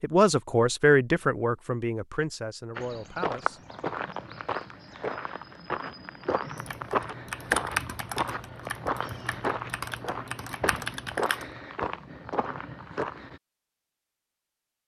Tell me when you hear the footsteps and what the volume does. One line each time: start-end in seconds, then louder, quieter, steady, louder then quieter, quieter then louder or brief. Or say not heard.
2.8-13.4 steady.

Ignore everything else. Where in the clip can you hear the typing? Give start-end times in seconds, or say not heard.
6.5-11.6.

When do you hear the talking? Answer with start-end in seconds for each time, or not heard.
0.0-3.6.